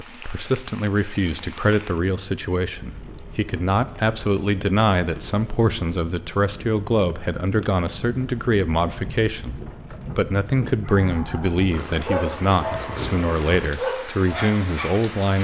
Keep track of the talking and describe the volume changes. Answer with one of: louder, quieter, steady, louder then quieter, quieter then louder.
steady.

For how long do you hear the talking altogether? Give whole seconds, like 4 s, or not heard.
15 s.